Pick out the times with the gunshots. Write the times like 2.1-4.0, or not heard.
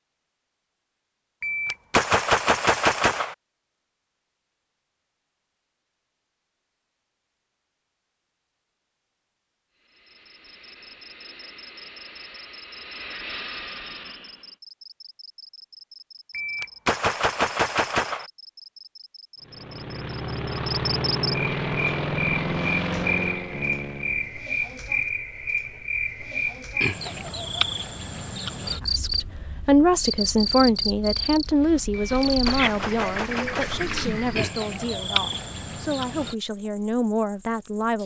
1.4-3.4, 16.3-18.2, 32.0-33.9.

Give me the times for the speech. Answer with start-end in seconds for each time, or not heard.
28.8-38.0.